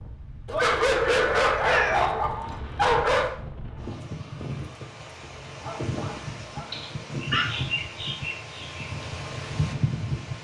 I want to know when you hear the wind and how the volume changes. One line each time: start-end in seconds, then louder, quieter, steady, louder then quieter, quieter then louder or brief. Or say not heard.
0.0-10.3 louder.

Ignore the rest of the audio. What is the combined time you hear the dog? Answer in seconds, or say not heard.
4 s.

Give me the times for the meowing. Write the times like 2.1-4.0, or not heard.
1.6-2.1, 6.7-7.5.